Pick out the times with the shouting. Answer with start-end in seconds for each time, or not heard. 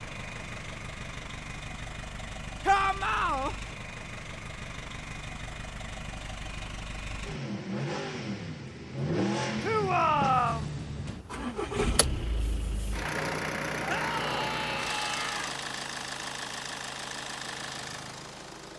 2.6-3.5, 9.6-10.7, 13.8-15.6.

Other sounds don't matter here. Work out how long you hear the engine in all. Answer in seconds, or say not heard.
19 s.